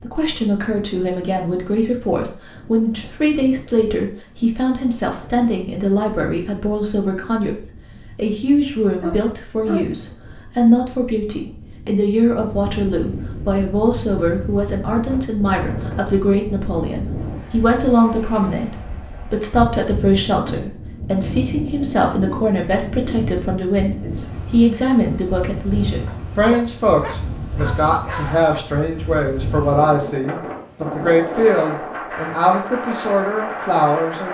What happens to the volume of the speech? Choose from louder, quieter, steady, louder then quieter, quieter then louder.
steady.